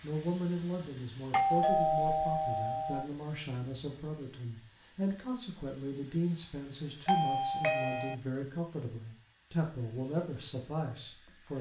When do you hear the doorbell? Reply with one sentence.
You can hear the doorbell from 1.3 to 3.0 s and from 7.0 to 8.2 s.